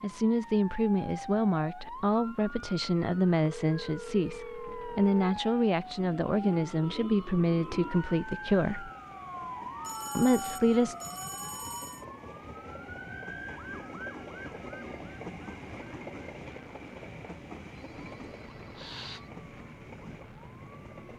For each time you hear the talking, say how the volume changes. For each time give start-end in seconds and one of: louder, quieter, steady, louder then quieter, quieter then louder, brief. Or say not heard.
0.0-8.9 steady
10.2-10.9 brief.